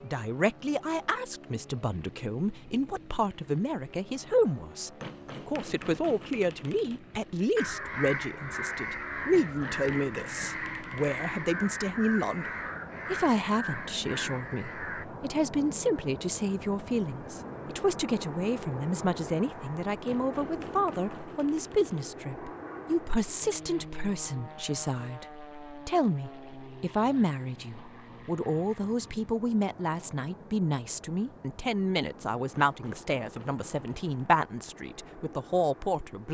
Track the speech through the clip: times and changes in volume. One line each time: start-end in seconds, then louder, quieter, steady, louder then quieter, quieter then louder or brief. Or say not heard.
0.0-12.5 steady
13.1-36.2 steady.